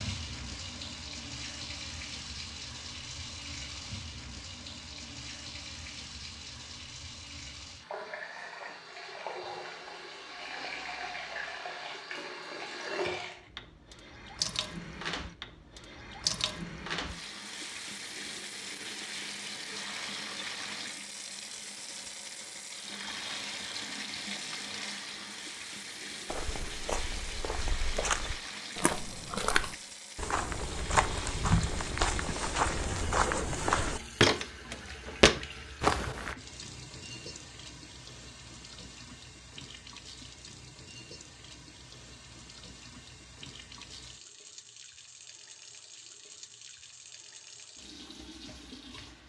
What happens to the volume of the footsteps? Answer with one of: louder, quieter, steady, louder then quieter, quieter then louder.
louder.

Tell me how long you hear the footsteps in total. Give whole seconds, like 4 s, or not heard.
10 s.